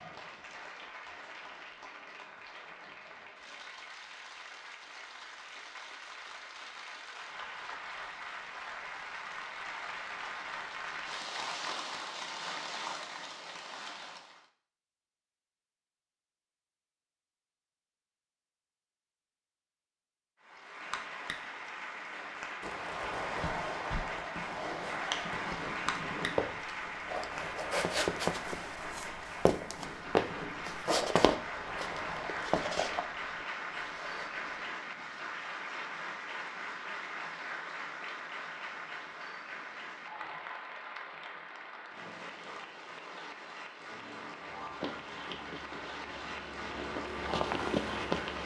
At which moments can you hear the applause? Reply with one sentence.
The applause can be heard from 0.0 to 14.4 s and from 20.4 to 48.4 s.